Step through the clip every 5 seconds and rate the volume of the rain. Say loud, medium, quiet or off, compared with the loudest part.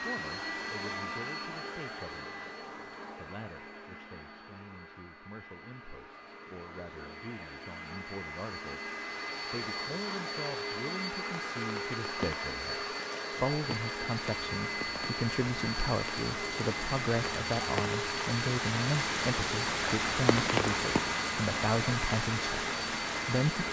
off, off, medium, loud, loud.